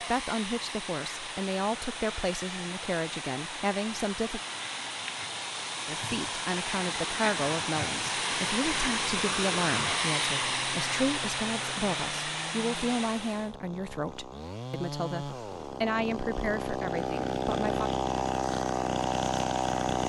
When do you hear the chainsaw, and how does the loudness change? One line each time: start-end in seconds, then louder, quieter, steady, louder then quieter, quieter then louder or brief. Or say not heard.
10.2-20.0 louder.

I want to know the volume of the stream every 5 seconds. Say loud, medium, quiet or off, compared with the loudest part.
medium, loud, loud, off.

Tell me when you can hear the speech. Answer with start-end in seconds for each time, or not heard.
0.0-4.4, 5.8-17.9.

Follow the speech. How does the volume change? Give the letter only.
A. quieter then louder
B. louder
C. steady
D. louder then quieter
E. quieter
C.